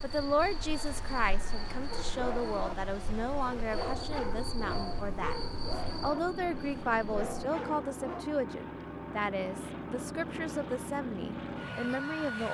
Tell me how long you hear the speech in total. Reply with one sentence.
You can hear the speech for 12 seconds altogether.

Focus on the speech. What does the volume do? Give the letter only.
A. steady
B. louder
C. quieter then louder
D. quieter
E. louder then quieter
A.